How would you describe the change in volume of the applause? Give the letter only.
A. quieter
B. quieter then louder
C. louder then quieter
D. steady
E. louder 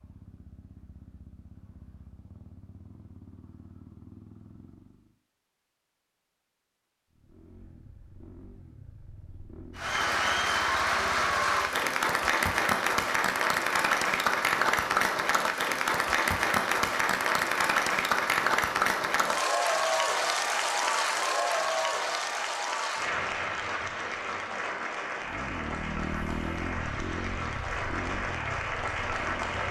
A.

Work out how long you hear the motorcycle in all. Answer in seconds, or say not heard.
14 s.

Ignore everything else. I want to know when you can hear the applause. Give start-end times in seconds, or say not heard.
9.8-29.6.